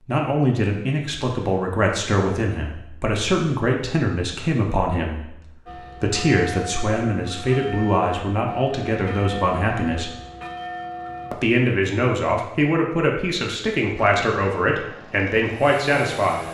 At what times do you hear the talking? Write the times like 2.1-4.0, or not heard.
0.1-10.1, 11.3-16.4.